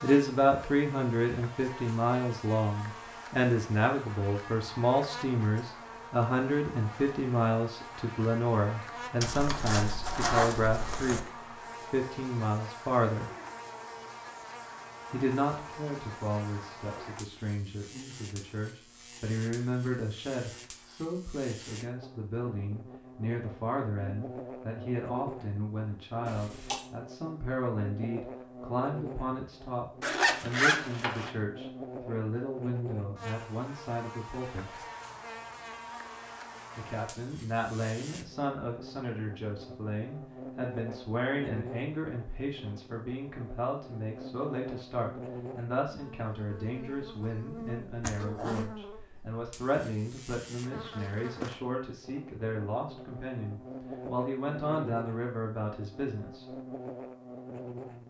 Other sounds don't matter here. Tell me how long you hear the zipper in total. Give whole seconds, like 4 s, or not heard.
4 s.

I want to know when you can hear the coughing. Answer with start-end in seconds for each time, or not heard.
26.2-26.9.